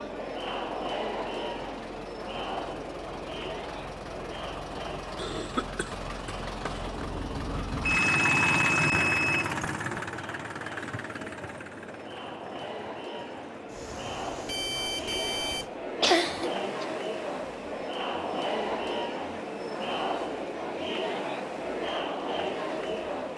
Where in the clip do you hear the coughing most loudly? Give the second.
16 s.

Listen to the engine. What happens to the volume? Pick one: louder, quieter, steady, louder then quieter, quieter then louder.
louder then quieter.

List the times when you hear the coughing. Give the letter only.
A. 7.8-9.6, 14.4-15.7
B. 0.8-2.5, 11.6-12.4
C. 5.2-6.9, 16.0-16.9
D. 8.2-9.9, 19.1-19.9
C.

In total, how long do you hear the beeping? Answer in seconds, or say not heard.
3 s.